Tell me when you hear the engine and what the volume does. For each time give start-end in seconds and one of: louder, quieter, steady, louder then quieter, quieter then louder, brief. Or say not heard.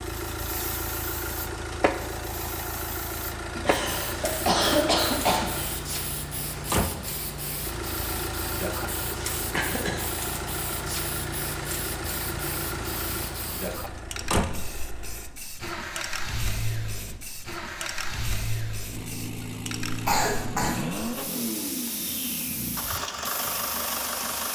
0.0-24.5 steady.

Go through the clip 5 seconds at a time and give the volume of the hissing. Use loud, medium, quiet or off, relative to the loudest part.
loud, loud, loud, medium, loud.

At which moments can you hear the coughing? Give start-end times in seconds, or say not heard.
3.5-5.8, 9.5-10.1, 20.1-20.8.